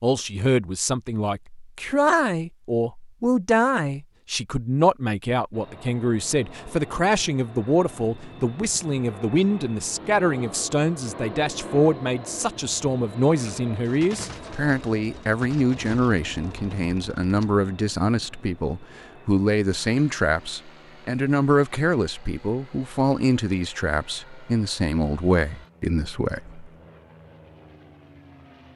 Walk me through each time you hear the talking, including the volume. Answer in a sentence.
You can hear the talking from 0.0 to 26.7 s, at a steady volume.